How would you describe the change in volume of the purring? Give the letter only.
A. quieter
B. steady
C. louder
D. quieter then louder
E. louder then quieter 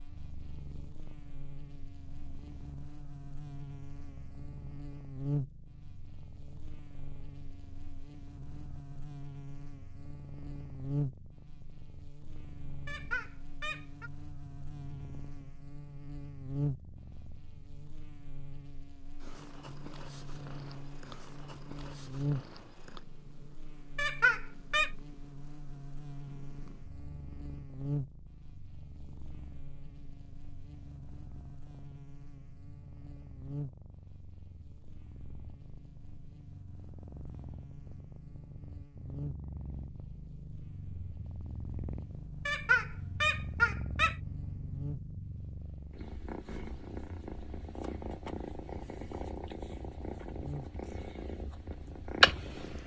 C.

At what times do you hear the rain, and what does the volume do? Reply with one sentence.
The rain can't be heard in this clip.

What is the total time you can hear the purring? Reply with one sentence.
You can hear the purring for 53 seconds altogether.